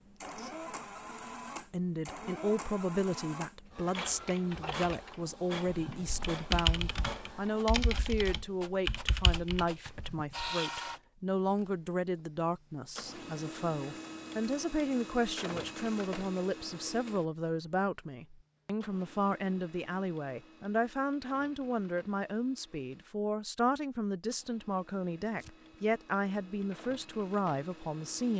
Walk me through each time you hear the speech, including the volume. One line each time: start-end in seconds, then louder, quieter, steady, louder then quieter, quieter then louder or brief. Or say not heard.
1.7-28.3 steady.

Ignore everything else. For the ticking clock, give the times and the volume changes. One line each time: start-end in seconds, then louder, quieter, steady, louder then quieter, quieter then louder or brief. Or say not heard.
not heard.